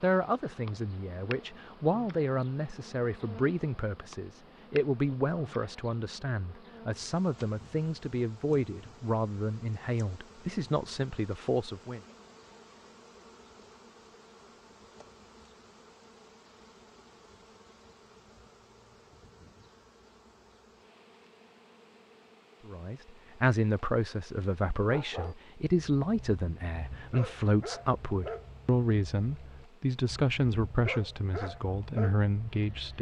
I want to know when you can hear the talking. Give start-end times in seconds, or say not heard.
0.0-12.0, 22.6-32.9.